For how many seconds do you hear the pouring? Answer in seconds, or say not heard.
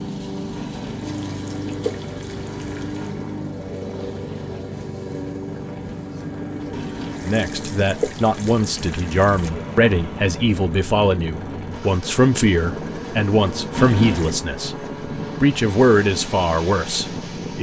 6 s.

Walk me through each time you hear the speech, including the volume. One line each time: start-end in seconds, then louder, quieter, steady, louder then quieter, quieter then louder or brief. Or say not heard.
7.2-17.5 steady.